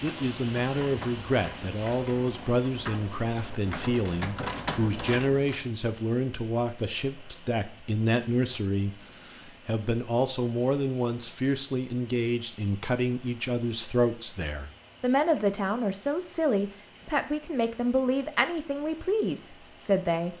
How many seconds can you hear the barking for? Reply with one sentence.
You can't hear the barking here.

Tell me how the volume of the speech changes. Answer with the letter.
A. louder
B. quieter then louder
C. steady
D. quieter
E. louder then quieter
C.